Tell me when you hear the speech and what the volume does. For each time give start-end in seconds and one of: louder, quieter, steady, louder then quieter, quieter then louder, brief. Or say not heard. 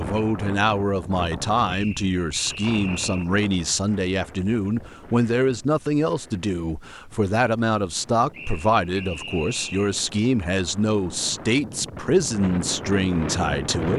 0.0-13.9 steady.